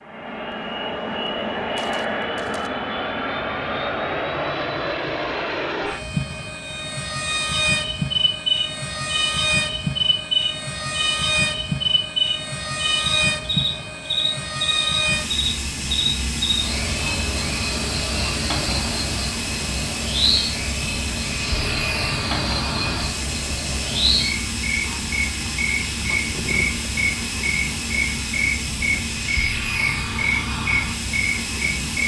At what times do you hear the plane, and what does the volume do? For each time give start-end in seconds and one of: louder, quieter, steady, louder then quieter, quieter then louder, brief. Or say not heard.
0.0-32.0 steady.